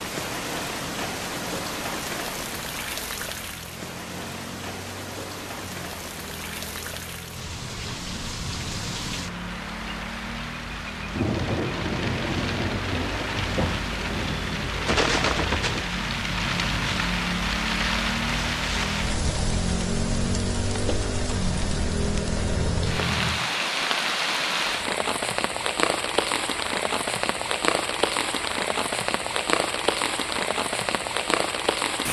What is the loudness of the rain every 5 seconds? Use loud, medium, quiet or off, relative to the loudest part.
medium, medium, loud, loud, loud, loud, loud.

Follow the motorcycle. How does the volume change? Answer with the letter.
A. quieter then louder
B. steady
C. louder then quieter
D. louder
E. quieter
D.